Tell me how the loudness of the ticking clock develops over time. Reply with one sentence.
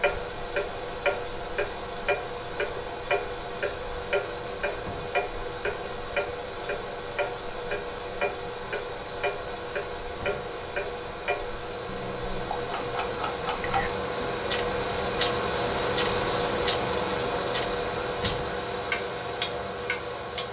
The volume of the ticking clock stays about the same.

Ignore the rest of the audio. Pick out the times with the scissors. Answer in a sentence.
You can't hear the scissors here.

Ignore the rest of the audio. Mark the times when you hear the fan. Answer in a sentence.
The fan can be heard from 0.0 to 20.4 s.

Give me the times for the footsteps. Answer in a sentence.
The footsteps can't be heard in this clip.